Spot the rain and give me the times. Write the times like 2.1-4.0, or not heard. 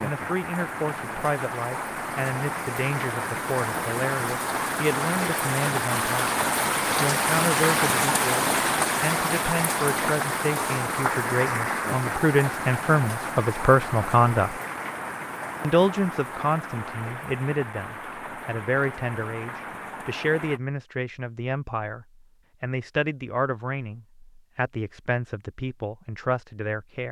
0.0-20.6.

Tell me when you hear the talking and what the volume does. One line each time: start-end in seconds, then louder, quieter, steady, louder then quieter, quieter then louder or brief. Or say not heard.
0.0-14.6 louder
15.6-27.0 steady.